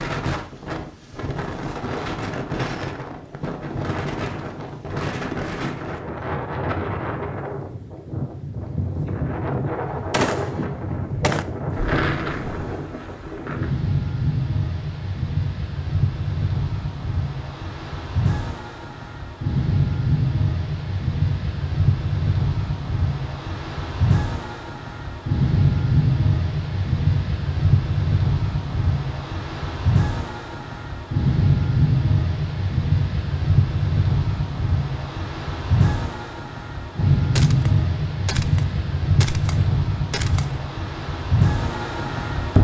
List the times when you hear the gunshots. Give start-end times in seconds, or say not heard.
9.8-11.4, 37.4-40.6.